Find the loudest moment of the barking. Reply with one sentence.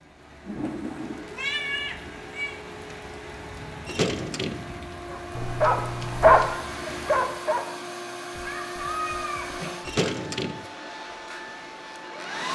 The volume of the barking peaks at 6 seconds.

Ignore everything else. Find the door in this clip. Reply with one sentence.
The door can be heard from 3.9 to 4.7 s and from 9.8 to 10.7 s.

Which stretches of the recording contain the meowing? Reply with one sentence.
The meowing can be heard from 0.5 to 2.5 s, from 5.3 to 6.6 s and from 8.3 to 10.0 s.